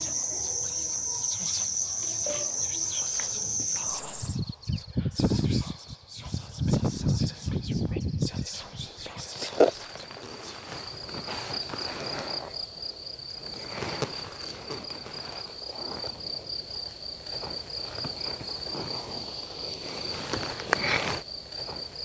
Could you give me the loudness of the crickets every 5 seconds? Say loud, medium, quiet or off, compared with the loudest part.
loud, loud, medium, medium, loud.